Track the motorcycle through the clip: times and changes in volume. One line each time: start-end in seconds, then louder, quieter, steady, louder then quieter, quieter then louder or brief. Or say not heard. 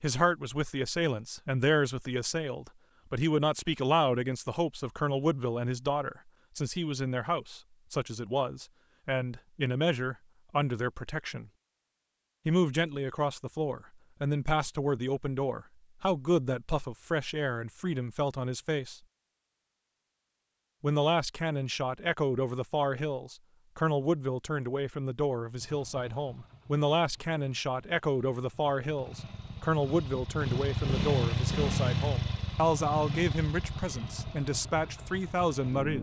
25.6-35.9 louder then quieter.